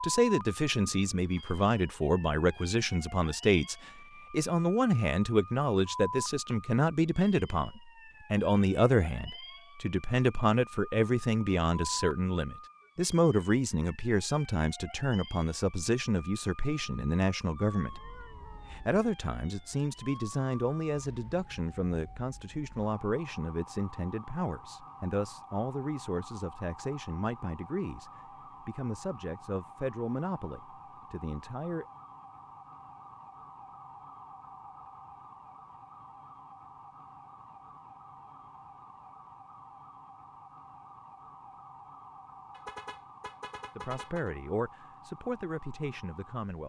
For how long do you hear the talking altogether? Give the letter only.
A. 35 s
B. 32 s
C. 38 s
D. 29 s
A.